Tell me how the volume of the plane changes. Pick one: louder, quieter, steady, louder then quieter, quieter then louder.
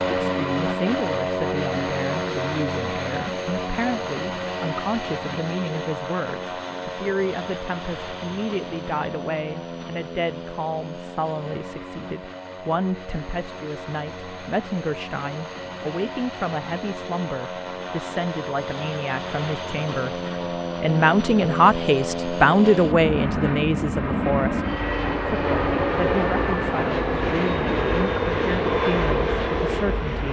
quieter then louder.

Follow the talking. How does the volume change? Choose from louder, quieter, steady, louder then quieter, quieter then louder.
louder then quieter.